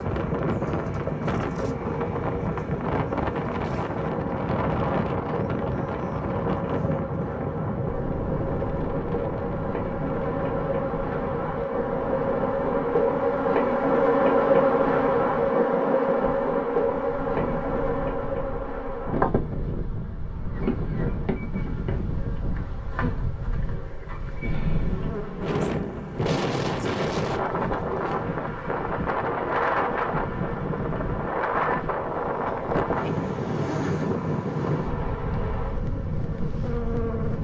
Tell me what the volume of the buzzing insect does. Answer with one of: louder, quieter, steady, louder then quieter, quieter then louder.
louder then quieter.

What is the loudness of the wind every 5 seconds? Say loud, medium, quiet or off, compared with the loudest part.
loud, loud, medium, medium, medium, loud, loud, medium.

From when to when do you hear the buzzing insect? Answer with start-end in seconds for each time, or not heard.
0.0-37.3.